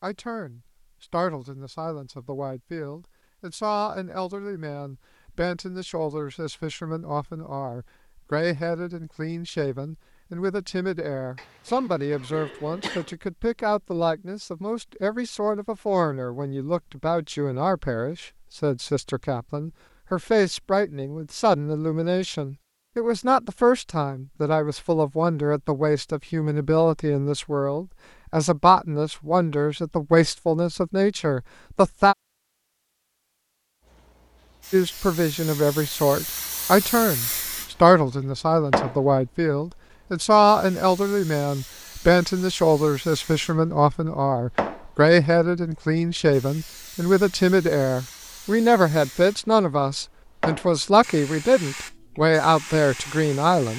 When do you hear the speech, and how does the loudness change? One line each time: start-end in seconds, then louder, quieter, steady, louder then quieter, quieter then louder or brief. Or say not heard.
0.0-32.1 louder
34.7-53.7 steady.